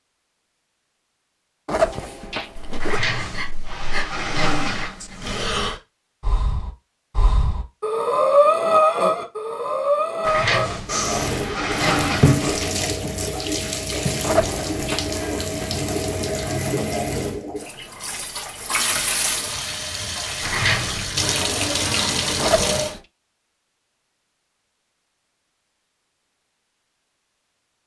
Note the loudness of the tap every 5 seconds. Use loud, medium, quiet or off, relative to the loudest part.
off, off, loud, loud, loud, off.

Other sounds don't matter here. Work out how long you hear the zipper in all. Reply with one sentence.
The zipper can be heard for 3 seconds in total.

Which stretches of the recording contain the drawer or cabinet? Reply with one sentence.
You can hear the drawer or cabinet from 2.8 to 5.5 s, from 10.2 to 12.8 s and from 20.4 to 21.1 s.